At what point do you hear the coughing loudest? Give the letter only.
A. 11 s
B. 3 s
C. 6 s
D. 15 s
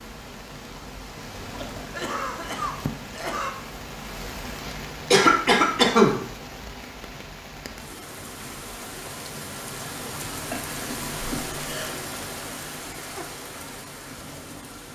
C.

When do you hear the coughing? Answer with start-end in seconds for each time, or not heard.
1.5-3.5, 5.1-6.2, 10.5-11.9.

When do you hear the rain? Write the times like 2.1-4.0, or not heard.
0.0-14.9.